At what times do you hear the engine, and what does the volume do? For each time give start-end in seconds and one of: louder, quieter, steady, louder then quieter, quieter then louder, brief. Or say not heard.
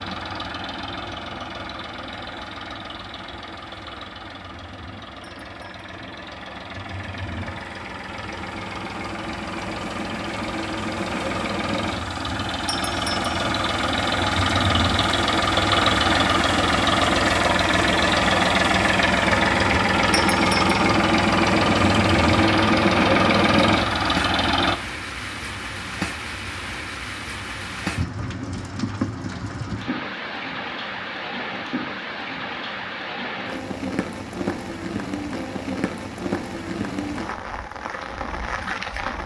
0.0-24.8 louder.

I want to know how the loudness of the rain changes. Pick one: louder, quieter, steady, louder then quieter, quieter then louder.
louder.